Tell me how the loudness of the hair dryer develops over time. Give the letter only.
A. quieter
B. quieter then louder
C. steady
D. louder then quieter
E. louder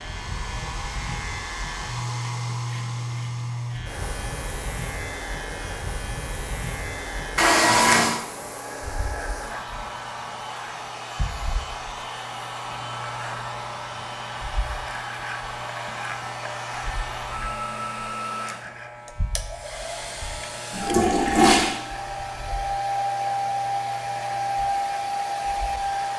E.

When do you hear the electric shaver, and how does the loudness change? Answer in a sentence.
The electric shaver can be heard from 0.0 to 26.1 s, getting quieter.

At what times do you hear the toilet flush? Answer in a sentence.
The toilet flush can be heard from 7.3 to 8.2 s and from 20.7 to 21.8 s.